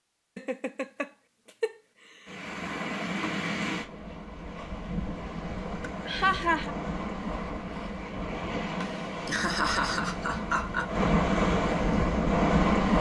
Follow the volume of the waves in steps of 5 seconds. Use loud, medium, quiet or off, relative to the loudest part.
medium, medium, loud.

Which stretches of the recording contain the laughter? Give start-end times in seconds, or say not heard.
0.3-1.8, 5.8-6.8, 8.8-10.9.